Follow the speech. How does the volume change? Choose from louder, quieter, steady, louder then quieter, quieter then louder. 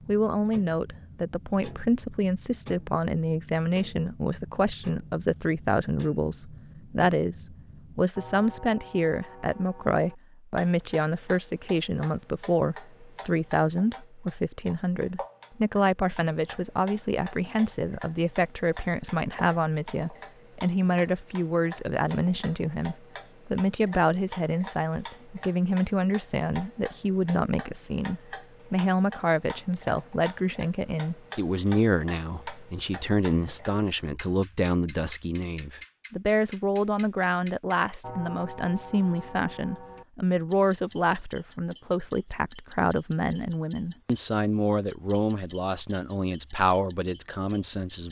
steady.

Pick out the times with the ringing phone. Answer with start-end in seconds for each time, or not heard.
not heard.